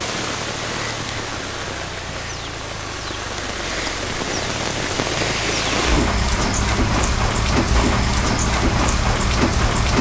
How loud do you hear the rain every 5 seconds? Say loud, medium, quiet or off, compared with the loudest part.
medium, loud.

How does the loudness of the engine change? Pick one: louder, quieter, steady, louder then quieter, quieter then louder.
louder.